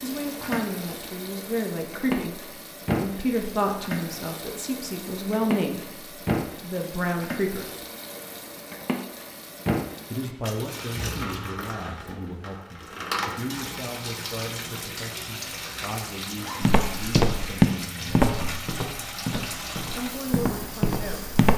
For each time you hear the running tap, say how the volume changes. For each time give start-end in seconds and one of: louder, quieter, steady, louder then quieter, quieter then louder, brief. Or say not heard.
0.0-21.5 steady.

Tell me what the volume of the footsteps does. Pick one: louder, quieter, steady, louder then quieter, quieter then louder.
quieter then louder.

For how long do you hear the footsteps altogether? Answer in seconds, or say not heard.
5 s.